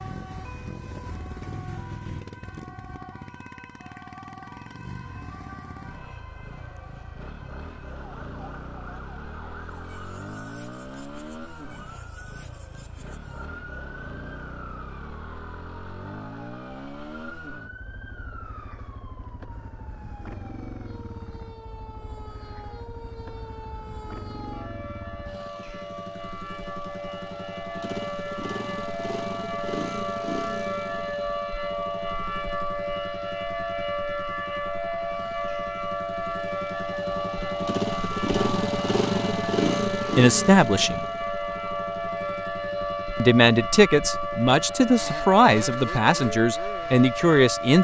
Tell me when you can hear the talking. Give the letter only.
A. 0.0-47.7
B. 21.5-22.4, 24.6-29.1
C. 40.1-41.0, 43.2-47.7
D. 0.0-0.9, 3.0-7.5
C.